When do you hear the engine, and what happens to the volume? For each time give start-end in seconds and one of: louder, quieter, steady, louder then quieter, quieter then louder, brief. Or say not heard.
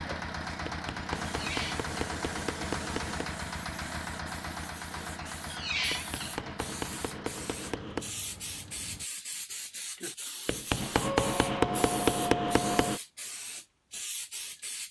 0.0-9.1 quieter.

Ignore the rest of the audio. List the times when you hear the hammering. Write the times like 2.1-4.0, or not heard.
0.7-3.4, 5.9-8.2, 10.4-13.0.